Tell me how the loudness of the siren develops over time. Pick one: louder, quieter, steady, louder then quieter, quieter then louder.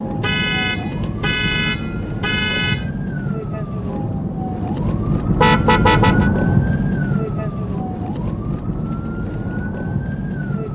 louder then quieter.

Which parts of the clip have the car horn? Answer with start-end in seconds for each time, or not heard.
0.2-2.9, 5.4-6.3.